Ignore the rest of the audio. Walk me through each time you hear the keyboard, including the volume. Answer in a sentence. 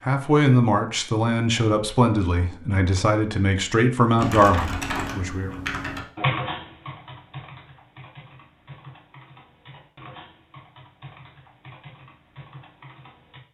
The keyboard can be heard from 4.2 to 13.4 s, getting quieter.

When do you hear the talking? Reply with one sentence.
The talking can be heard from 0.1 to 5.5 s.